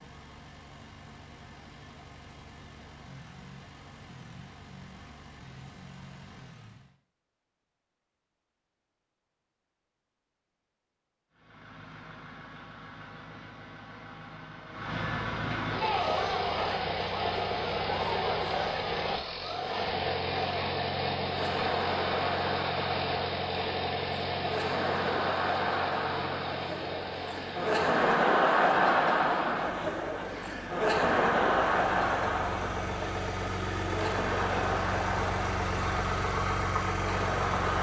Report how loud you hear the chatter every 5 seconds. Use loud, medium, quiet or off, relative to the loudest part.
off, off, off, medium, medium, loud, loud, medium.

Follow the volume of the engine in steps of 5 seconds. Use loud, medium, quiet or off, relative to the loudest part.
quiet, quiet, quiet, loud, loud, medium, medium, loud.